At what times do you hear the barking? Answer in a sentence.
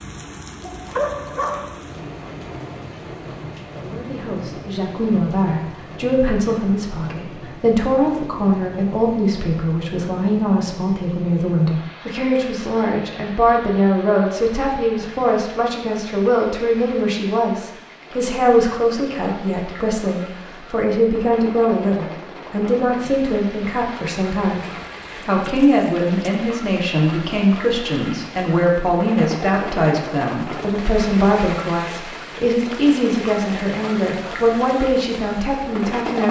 The barking can be heard from 0.6 to 1.8 s and from 24.6 to 26.4 s.